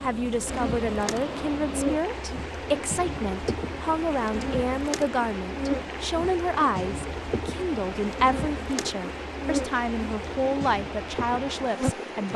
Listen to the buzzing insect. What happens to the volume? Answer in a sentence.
The loudness of the buzzing insect stays about the same.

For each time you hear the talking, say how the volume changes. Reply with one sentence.
The talking can be heard from 0.0 to 12.3 s, at a steady volume.